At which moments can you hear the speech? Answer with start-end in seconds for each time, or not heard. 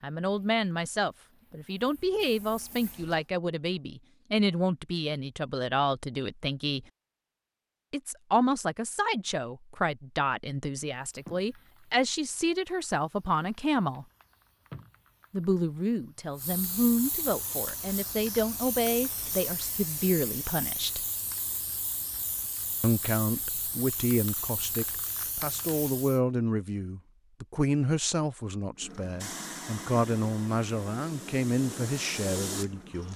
0.0-6.8, 7.9-14.1, 15.3-21.0, 22.8-33.1.